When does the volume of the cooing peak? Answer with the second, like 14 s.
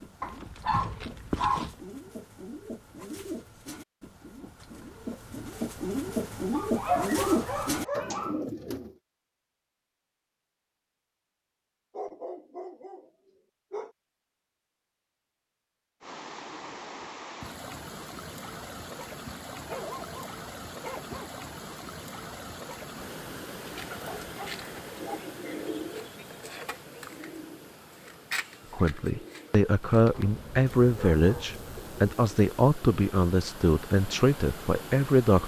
7 s.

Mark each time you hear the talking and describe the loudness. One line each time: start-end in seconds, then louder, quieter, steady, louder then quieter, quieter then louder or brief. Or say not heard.
28.7-35.4 steady.